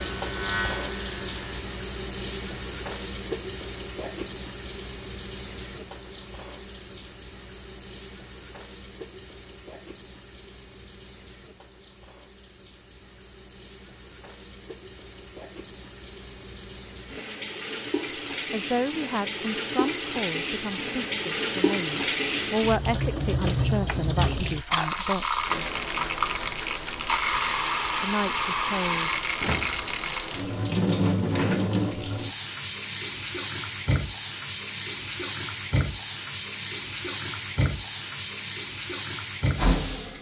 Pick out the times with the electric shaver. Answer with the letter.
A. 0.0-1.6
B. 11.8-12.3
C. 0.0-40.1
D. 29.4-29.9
A.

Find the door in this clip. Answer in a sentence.
The door can be heard from 29.4 to 29.9 s.